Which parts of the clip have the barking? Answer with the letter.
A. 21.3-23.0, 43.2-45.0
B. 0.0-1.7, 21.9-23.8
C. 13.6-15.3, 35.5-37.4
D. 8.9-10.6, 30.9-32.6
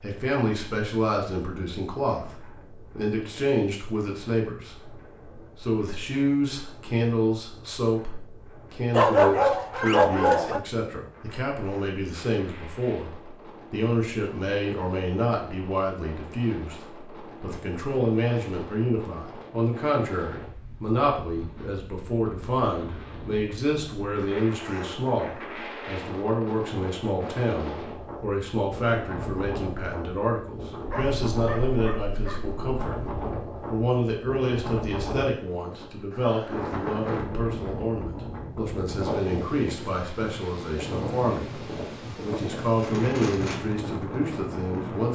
D.